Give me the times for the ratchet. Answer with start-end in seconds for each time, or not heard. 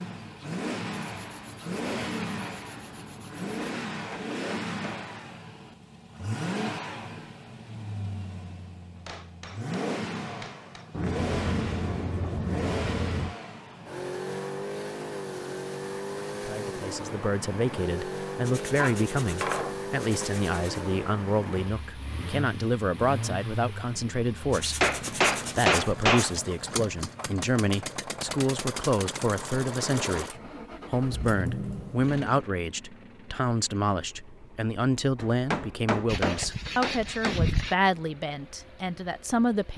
not heard.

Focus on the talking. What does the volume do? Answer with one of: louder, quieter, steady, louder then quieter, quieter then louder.
steady.